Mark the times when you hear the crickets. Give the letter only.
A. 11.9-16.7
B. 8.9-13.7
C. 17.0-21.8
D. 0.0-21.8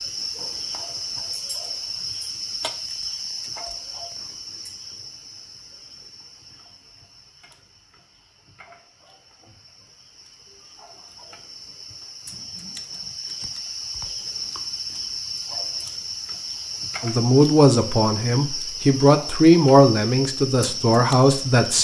D.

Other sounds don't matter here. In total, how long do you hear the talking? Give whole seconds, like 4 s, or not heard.
5 s.